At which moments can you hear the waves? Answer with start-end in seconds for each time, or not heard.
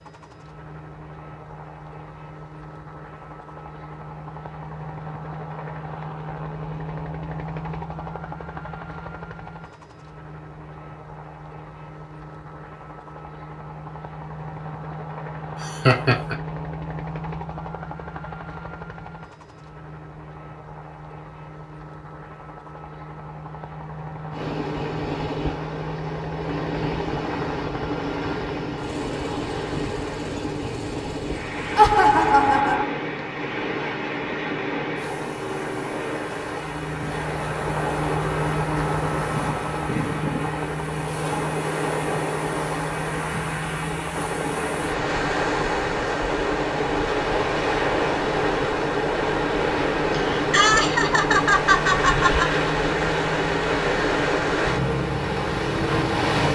24.3-56.4.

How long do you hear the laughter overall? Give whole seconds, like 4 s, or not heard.
4 s.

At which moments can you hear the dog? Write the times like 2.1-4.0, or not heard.
not heard.